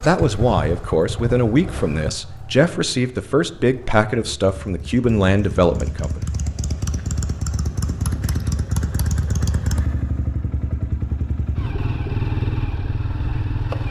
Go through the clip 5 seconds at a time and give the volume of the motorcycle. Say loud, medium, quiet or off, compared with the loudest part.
medium, loud, loud.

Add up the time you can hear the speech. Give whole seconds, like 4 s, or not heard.
6 s.